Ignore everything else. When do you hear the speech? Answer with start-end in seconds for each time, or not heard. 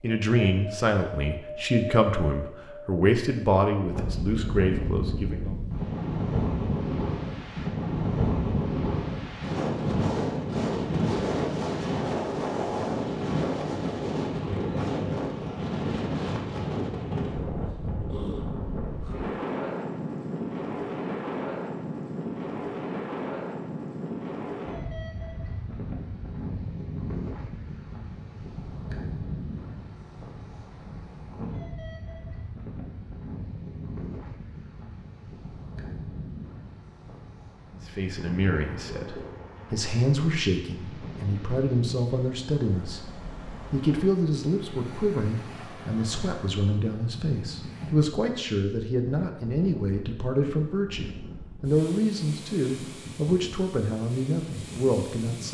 0.0-5.5, 37.9-43.0, 43.7-55.4.